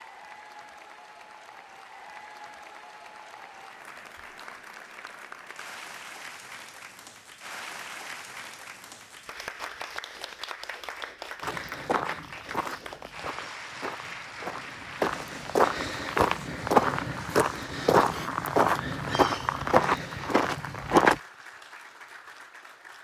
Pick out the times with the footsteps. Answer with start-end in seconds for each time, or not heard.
11.4-21.2.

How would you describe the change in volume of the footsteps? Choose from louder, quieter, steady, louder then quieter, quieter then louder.
louder.